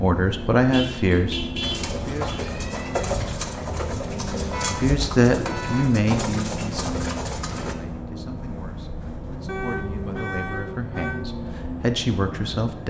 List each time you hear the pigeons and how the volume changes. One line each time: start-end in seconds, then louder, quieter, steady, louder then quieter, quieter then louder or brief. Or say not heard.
1.6-7.8 steady.